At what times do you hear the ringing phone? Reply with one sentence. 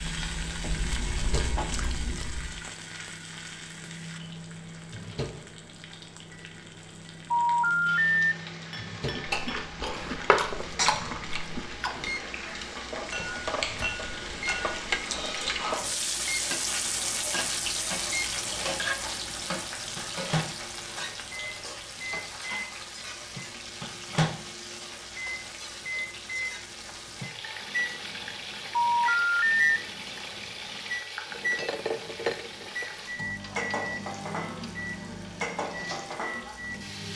The ringing phone can be heard from 7.3 to 8.2 s and from 28.7 to 29.6 s.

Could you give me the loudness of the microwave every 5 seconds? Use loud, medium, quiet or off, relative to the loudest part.
medium, medium, medium, medium, loud, loud, loud, medium.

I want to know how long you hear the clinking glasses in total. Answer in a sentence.
The clinking glasses can be heard for 4 seconds in total.